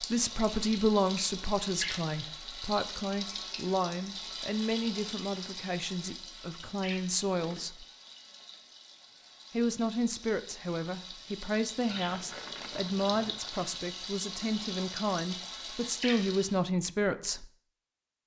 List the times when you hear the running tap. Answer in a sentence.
The running tap can be heard from 0.0 to 16.6 s.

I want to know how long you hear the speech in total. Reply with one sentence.
You can hear the speech for 16 seconds altogether.